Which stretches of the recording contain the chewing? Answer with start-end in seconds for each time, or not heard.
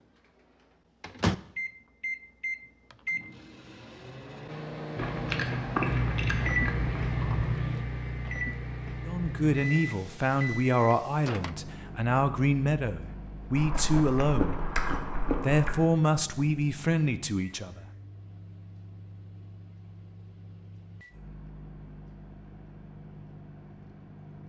5.0-7.6, 13.6-15.8.